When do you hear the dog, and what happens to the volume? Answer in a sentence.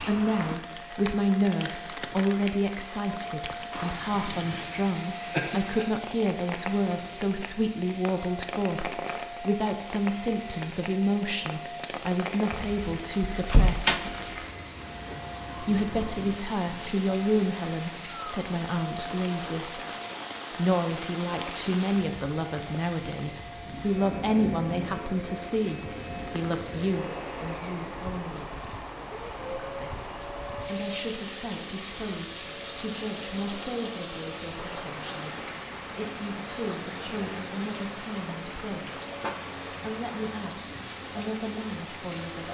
You can't hear the dog here.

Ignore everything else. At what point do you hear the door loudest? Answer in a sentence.
The loudest moment of the door is at 14 seconds.